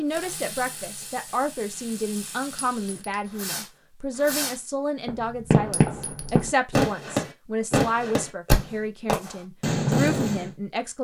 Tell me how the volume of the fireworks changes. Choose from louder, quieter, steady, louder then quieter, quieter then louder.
louder.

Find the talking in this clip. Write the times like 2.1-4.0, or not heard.
0.0-10.9.